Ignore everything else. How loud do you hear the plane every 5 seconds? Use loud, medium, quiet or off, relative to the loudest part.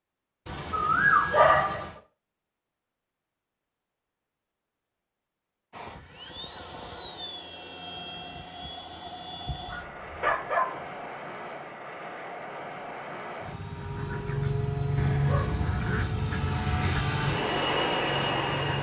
off, medium, medium, loud.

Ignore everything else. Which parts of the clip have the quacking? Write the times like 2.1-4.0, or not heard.
13.8-18.7.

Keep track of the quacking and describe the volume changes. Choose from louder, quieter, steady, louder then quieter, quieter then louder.
quieter.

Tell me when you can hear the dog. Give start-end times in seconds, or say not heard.
0.5-1.9, 9.7-10.8, 14.9-17.0.